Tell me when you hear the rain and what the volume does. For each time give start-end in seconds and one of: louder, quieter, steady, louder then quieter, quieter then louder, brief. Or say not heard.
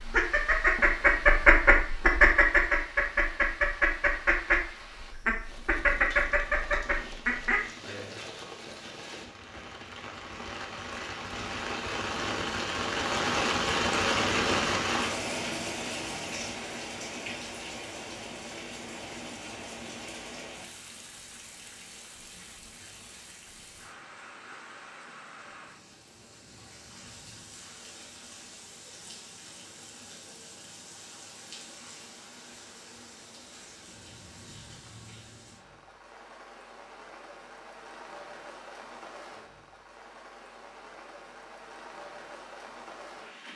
0.0-43.5 louder then quieter.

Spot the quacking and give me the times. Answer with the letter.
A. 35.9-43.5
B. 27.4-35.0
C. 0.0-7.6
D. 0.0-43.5
C.